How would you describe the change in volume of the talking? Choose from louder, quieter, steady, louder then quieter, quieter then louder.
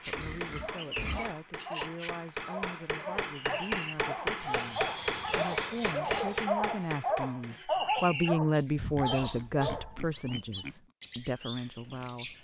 louder then quieter.